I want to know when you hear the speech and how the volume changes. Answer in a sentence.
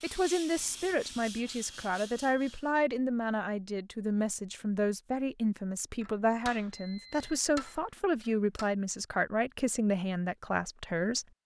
The speech can be heard from 0.0 to 11.2 s, at a steady volume.